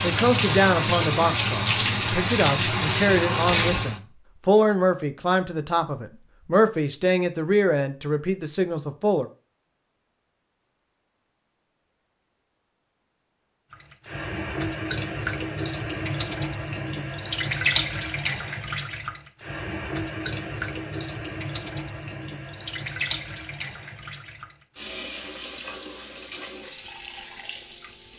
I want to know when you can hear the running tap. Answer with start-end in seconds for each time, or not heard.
0.0-4.0, 13.7-28.1.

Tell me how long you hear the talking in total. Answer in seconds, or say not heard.
9 s.